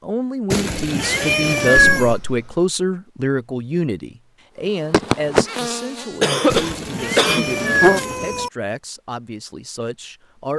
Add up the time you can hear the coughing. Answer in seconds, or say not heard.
2 s.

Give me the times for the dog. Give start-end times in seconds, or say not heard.
not heard.